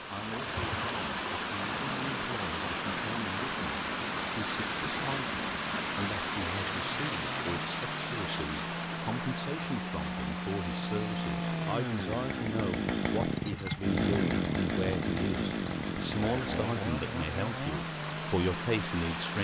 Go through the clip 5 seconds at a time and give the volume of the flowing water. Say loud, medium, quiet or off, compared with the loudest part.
loud, loud, medium, medium.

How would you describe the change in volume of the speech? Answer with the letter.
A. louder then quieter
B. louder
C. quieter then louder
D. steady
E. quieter
B.